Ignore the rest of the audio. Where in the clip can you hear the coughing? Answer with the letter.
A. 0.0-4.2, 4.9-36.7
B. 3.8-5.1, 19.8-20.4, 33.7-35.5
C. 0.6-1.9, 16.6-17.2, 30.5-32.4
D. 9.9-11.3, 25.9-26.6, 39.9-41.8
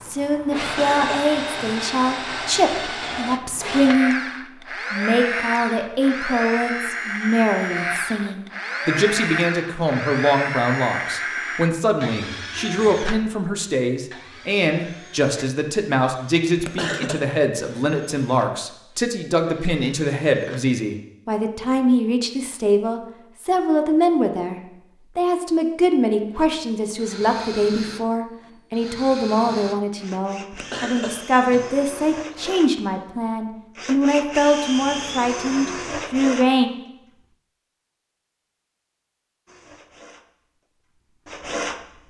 C.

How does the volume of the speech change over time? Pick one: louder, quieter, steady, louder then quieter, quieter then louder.
steady.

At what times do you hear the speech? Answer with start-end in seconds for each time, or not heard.
0.0-4.2, 4.9-36.7.